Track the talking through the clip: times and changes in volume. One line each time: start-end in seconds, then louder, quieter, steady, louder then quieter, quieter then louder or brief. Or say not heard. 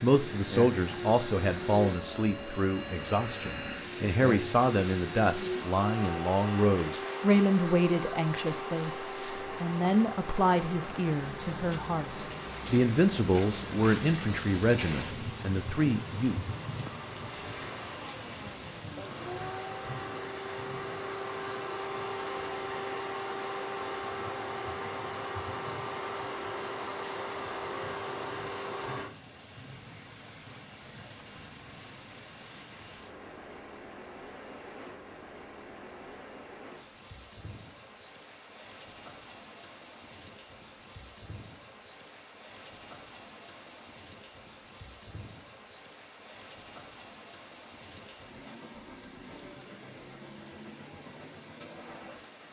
0.0-16.4 steady.